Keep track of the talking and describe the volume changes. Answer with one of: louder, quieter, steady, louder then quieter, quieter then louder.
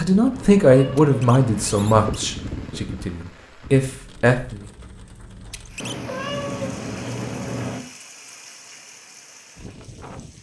quieter then louder.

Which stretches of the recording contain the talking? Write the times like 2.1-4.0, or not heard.
0.0-4.7.